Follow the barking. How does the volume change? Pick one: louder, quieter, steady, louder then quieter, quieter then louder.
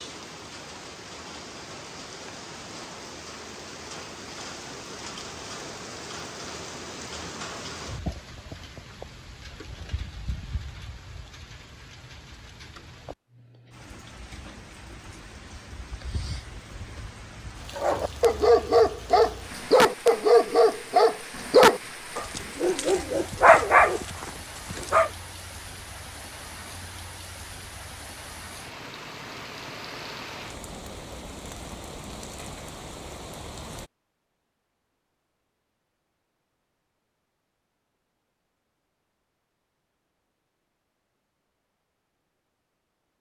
quieter then louder.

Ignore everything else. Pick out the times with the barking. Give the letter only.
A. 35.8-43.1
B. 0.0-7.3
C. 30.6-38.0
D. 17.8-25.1
D.